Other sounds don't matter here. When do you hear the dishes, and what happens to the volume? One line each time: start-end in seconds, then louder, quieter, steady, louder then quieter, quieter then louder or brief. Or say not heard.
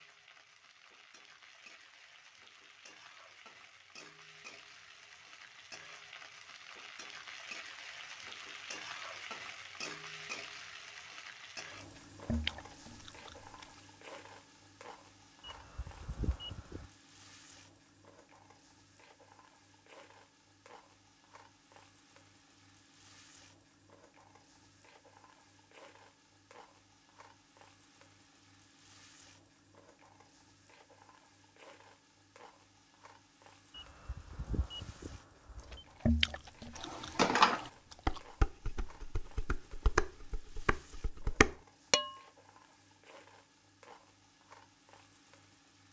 36.8-42.1 quieter then louder.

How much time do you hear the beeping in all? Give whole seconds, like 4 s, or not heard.
4 s.